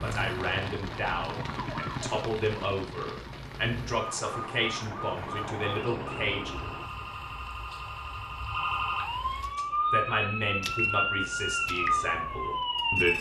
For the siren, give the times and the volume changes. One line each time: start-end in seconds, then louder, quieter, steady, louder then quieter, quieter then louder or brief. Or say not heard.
0.0-13.1 louder.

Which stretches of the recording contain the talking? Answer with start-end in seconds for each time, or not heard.
0.0-6.5, 9.6-13.1.